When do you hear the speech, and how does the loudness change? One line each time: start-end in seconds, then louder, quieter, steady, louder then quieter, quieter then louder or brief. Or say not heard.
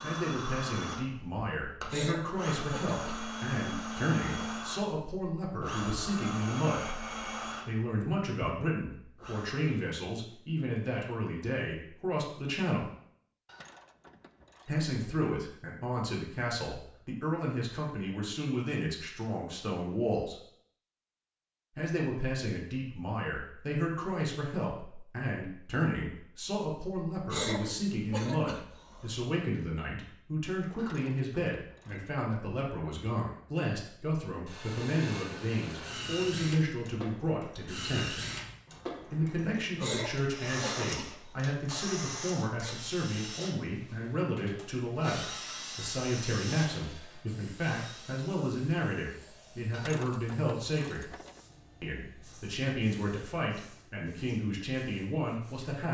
0.0-6.9 steady
7.7-12.9 steady
14.7-20.4 steady
21.8-38.2 steady
39.0-51.1 steady
51.8-55.8 quieter then louder.